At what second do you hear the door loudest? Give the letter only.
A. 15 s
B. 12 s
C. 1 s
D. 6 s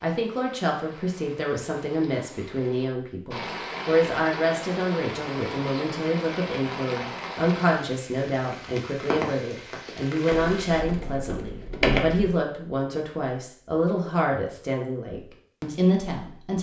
B.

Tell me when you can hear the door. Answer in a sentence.
You can hear the door from 10.5 to 12.3 s.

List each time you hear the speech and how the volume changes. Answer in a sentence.
The speech can be heard from 0.0 to 16.5 s, at a steady volume.